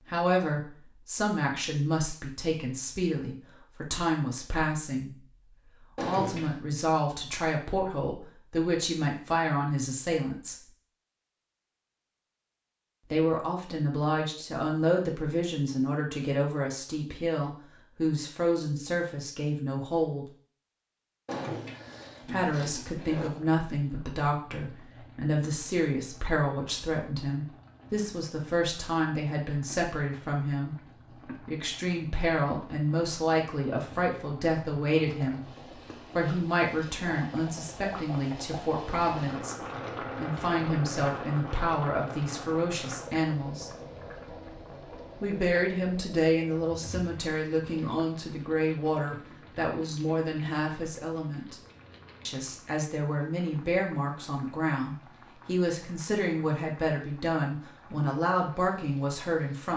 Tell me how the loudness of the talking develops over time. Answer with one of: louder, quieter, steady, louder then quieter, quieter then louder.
steady.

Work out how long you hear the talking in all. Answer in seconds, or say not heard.
53 s.